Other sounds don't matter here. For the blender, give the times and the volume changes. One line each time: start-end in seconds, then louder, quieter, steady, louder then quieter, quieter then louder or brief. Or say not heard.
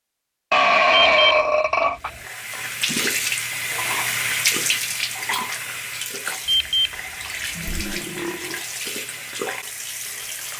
not heard.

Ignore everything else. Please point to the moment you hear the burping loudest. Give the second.
1 s.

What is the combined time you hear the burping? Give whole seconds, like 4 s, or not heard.
3 s.